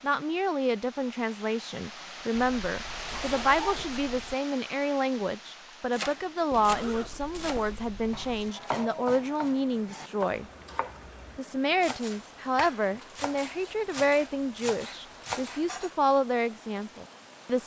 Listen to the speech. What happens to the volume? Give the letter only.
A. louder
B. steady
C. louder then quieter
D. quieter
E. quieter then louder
B.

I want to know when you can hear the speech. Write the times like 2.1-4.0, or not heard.
0.0-10.4, 11.3-17.6.